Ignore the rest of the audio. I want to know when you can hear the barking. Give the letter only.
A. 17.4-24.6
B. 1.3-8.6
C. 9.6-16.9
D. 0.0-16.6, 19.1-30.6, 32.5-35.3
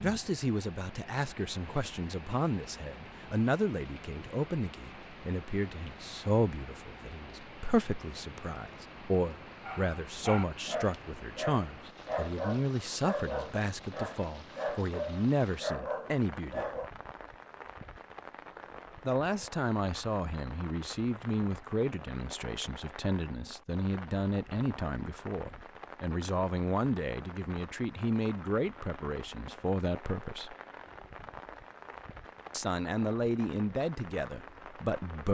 C.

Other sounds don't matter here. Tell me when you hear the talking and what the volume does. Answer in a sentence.
The talking can be heard from 0.0 to 16.6 s, at a steady volume; from 19.1 to 30.6 s, at a steady volume; and briefly from 32.5 to 35.3 s.